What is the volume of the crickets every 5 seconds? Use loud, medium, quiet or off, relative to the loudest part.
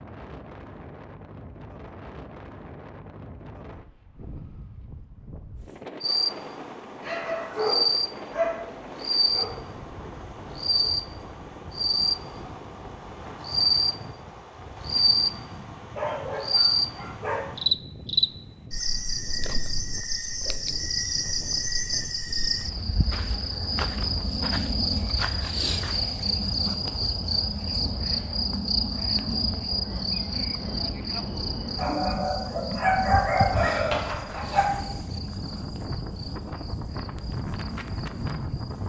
off, loud, loud, loud, loud, loud, medium, quiet.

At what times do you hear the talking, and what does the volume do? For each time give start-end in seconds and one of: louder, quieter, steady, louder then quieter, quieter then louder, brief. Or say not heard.
not heard.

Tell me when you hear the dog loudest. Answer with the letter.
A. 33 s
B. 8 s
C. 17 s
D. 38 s
A.